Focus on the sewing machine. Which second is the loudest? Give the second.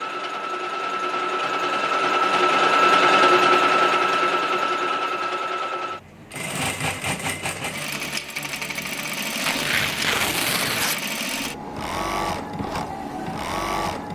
3 s.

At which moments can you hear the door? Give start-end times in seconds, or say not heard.
not heard.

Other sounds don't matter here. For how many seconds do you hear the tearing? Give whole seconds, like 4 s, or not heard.
2 s.